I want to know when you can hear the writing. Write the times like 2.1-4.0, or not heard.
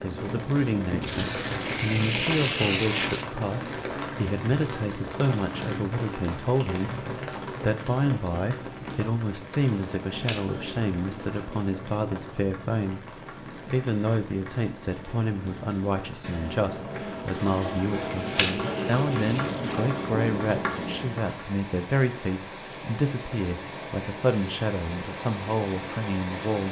9.8-21.4.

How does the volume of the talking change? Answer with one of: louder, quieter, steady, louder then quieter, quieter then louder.
steady.